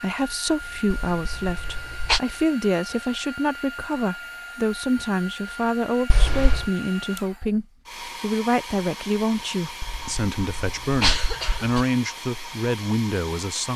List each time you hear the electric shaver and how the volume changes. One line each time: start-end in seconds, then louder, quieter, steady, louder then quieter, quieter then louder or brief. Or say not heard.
not heard.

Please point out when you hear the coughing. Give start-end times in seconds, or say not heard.
0.9-2.2, 6.0-6.7, 9.8-11.8.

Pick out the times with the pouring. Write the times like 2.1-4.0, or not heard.
not heard.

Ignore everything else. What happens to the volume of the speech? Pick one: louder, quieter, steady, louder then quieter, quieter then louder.
steady.